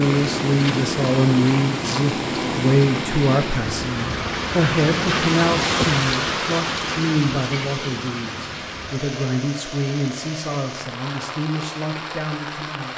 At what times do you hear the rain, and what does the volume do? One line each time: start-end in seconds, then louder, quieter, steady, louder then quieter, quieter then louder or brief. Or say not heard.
0.0-12.9 louder then quieter.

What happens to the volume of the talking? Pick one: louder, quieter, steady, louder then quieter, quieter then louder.
quieter.